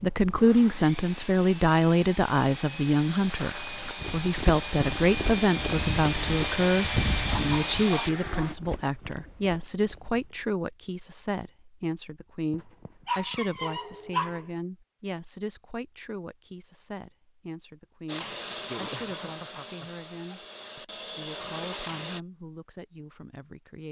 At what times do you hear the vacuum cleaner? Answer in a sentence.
The vacuum cleaner can be heard from 0.0 to 8.6 s and from 18.1 to 22.2 s.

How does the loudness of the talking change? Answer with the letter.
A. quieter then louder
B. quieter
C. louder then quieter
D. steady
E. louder
B.